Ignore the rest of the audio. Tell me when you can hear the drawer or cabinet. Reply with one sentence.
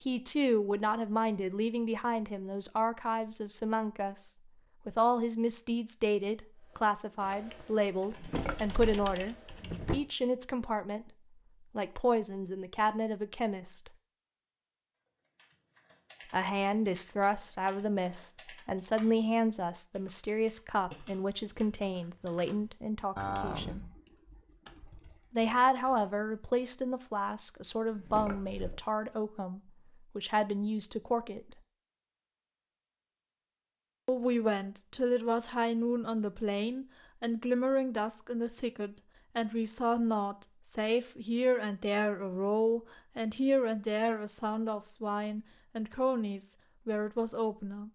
You can hear the drawer or cabinet from 8.1 to 9.9 s and from 27.9 to 28.9 s.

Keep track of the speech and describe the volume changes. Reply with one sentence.
The loudness of the speech stays about the same.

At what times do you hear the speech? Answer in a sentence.
You can hear the speech from 0.0 to 13.9 s, from 16.3 to 23.8 s, from 25.3 to 31.6 s and from 34.0 to 47.8 s.